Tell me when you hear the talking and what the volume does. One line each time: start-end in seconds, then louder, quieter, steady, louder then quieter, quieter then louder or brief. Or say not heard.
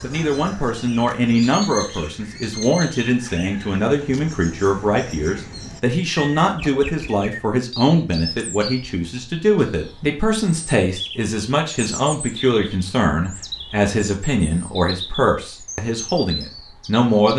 0.0-17.3 steady.